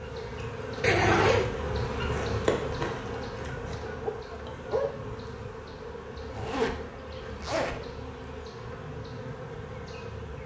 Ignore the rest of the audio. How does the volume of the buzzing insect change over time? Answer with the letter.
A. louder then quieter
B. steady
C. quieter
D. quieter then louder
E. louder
C.